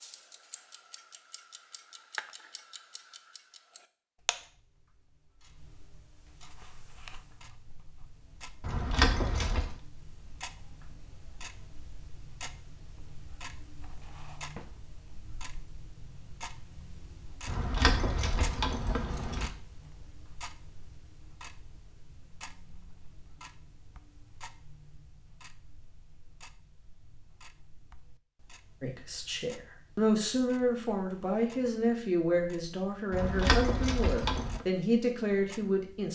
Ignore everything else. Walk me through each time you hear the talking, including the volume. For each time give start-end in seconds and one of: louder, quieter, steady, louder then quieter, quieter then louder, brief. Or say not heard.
28.8-36.1 steady.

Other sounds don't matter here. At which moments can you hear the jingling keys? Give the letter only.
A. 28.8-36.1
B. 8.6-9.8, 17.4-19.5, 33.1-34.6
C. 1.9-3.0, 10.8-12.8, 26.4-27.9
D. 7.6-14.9
B.